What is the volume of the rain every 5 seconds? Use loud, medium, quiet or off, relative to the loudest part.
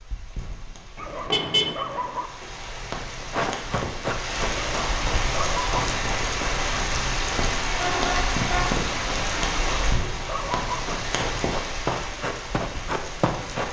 medium, loud, medium.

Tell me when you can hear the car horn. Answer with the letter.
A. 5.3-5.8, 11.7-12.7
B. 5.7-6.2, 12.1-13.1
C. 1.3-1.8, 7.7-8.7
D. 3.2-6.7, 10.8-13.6
C.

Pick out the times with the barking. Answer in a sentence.
The barking can be heard from 0.9 to 2.3 s, from 4.5 to 5.8 s and from 9.5 to 10.8 s.